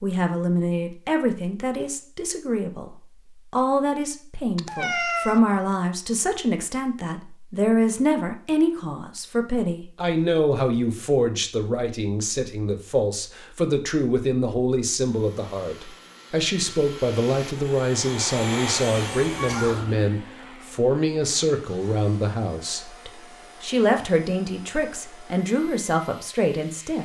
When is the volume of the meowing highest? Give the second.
5 s.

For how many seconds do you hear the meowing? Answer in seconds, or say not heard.
2 s.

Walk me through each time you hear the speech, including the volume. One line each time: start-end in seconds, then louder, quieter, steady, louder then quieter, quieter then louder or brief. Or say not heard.
0.0-26.9 steady.